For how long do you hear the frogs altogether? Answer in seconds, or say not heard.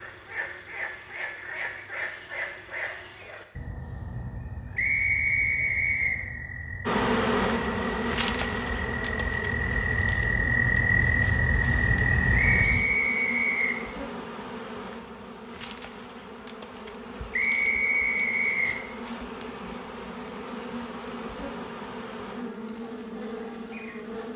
13 s.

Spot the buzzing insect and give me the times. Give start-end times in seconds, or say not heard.
6.8-24.3.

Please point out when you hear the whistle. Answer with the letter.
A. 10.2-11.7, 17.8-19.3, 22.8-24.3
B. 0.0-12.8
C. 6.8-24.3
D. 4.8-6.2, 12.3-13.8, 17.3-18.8
D.